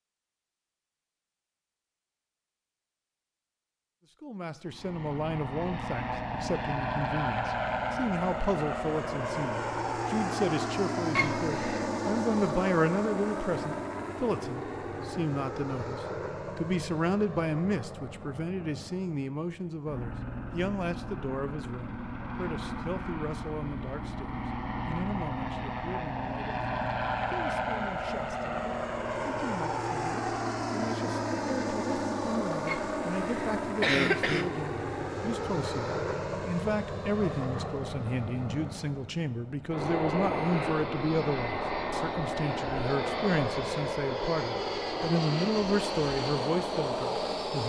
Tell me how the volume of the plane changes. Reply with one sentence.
The volume of the plane goes down, then up.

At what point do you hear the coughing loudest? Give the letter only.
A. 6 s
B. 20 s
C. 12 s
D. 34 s
D.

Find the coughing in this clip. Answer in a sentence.
The coughing can be heard from 11.2 to 11.9 s and from 32.6 to 34.5 s.